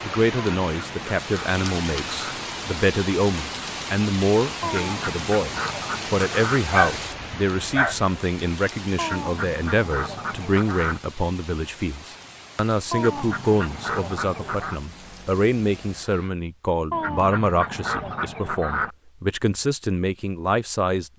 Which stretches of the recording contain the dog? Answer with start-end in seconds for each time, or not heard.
6.7-8.1.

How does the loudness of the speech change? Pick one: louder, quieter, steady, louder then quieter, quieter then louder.
steady.